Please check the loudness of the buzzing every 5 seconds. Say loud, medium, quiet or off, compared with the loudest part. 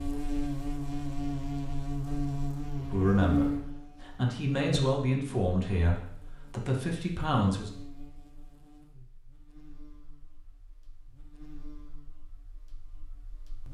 loud, quiet, quiet.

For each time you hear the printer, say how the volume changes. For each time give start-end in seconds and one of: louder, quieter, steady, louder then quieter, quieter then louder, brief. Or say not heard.
not heard.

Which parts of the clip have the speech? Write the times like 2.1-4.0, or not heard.
2.8-7.7.